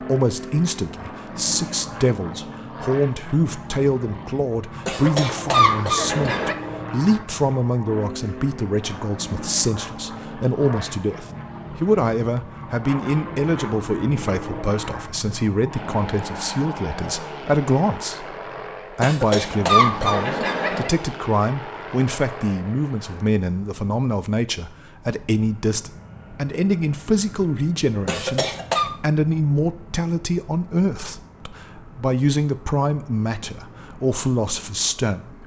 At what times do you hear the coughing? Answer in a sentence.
You can hear the coughing from 4.8 to 6.5 s, from 19.0 to 20.9 s and from 28.1 to 28.9 s.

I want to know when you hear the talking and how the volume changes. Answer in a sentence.
The talking can be heard from 0.0 to 35.4 s, at a steady volume.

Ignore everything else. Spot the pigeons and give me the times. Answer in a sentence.
The pigeons can't be heard in this clip.